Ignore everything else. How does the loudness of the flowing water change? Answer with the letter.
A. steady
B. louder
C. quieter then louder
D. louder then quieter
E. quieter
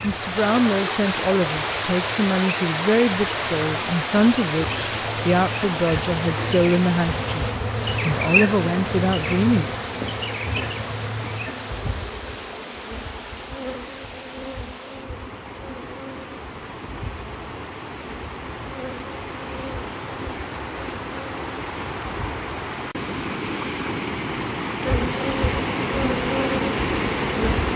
C.